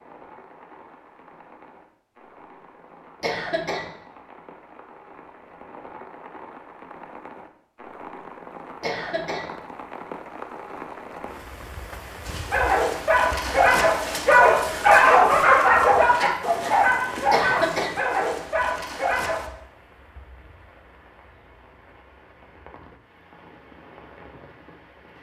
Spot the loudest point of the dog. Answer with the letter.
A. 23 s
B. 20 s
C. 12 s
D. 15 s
D.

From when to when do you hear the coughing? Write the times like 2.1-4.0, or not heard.
3.2-3.9, 8.8-9.5, 17.3-18.0.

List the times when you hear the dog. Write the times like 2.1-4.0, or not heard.
12.2-19.4.